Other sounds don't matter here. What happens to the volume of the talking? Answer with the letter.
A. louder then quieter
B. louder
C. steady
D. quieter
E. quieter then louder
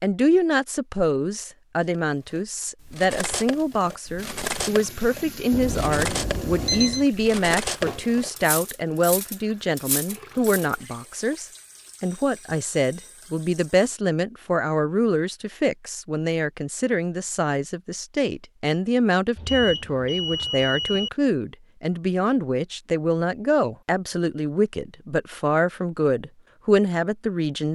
C.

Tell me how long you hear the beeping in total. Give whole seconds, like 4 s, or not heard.
4 s.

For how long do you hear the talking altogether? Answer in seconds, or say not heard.
28 s.